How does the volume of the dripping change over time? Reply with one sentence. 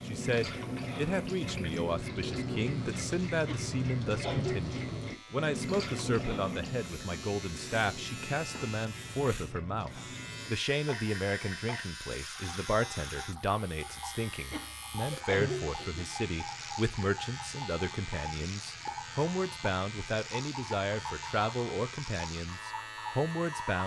The loudness of the dripping goes down.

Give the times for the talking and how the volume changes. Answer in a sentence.
The talking can be heard from 0.0 to 23.8 s, at a steady volume.